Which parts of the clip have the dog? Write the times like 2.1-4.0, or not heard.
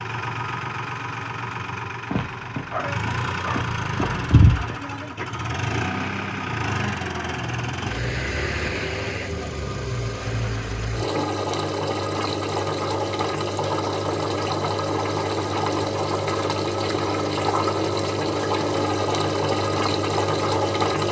2.1-4.8.